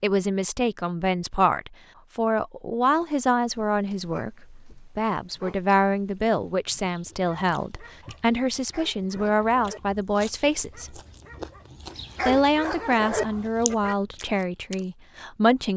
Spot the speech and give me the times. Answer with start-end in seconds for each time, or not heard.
0.0-11.0, 12.2-15.7.